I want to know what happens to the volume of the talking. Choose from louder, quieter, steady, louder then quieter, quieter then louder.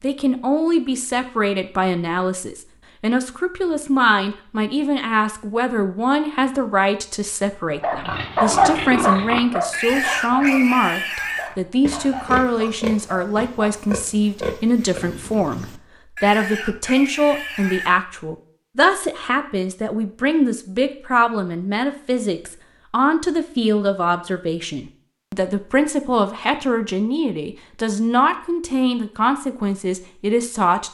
steady.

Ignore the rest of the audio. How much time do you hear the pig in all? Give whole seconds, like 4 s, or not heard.
10 s.